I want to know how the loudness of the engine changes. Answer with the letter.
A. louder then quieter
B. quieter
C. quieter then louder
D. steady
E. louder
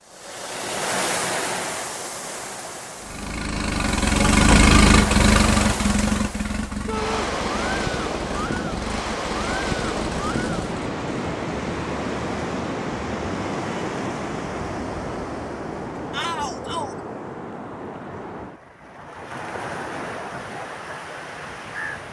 B.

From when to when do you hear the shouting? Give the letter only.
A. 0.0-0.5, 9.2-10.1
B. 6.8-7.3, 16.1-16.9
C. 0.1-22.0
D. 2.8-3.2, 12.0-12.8
B.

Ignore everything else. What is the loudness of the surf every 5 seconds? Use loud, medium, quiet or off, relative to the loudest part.
loud, loud, loud, medium, medium.